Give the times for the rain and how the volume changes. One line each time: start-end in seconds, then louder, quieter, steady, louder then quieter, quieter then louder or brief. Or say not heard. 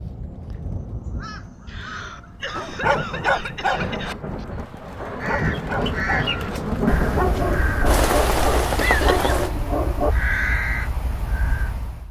0.0-9.5 louder.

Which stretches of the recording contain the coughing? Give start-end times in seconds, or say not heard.
1.6-4.5, 8.8-9.3.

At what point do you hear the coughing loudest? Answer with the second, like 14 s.
9 s.